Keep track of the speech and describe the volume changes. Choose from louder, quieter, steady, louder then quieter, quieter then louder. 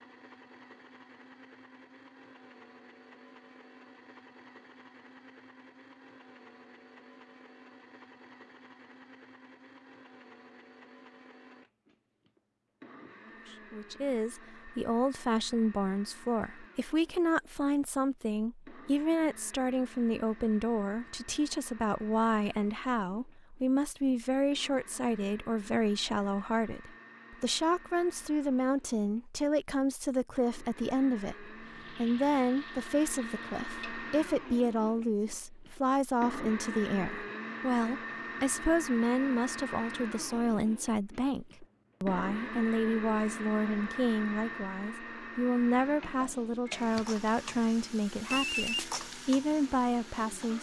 steady.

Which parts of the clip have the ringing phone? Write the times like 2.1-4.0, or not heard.
48.3-48.9.